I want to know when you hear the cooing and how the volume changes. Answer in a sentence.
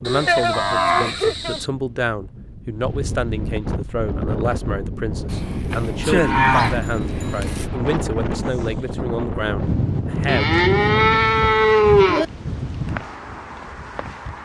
You can't hear the cooing here.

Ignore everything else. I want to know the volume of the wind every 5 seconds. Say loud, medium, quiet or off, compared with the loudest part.
medium, loud, loud.